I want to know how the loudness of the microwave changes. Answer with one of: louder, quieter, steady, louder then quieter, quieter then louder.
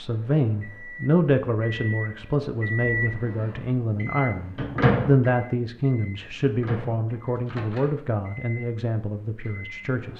louder then quieter.